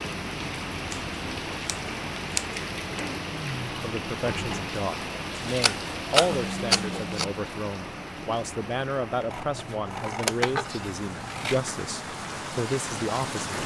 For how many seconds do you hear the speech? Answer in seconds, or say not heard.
10 s.